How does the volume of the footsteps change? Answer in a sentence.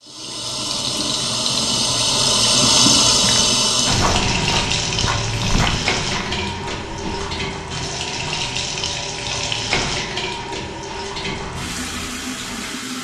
The loudness of the footsteps goes down.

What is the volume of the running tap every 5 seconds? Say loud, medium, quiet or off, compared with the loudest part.
loud, medium, medium.